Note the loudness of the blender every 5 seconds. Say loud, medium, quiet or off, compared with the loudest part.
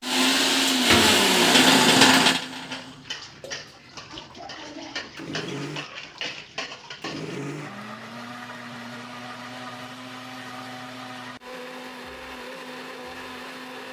loud, quiet, quiet.